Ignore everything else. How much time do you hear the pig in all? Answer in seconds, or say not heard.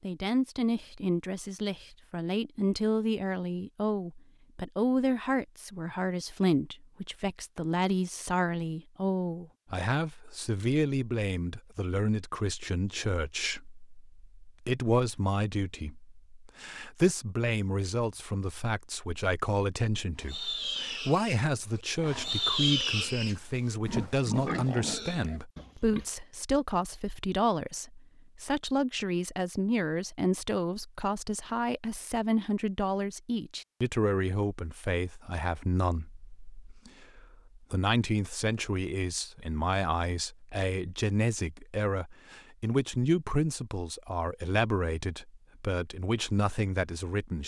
6 s.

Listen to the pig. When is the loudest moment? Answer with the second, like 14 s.
23 s.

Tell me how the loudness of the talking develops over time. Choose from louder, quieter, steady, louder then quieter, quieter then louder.
steady.